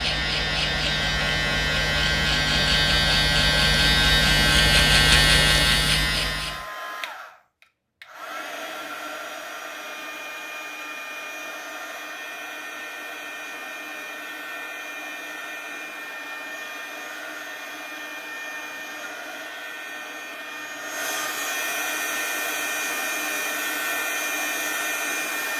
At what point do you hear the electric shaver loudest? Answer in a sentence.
The volume of the electric shaver peaks at 5 seconds.